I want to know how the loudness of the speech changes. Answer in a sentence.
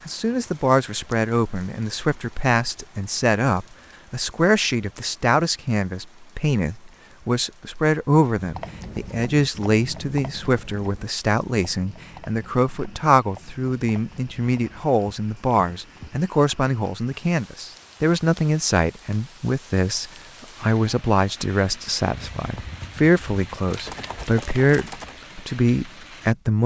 The volume of the speech stays about the same.